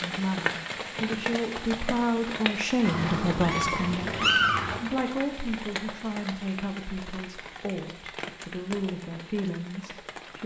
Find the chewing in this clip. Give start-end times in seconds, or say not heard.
not heard.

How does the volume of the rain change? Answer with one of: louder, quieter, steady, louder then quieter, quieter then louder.
quieter.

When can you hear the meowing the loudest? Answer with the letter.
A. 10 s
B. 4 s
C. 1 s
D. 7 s
B.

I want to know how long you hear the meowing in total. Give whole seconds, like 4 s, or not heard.
2 s.